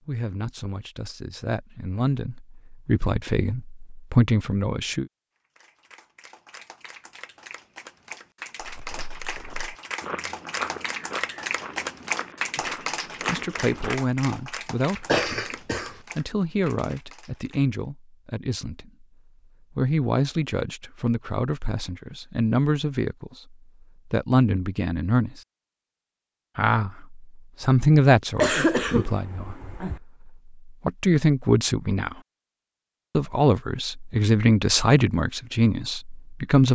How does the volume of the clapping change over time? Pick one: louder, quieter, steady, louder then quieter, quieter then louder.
louder then quieter.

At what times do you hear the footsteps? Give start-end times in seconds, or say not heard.
8.6-13.9.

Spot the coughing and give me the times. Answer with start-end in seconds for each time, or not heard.
15.1-15.9, 28.4-30.0.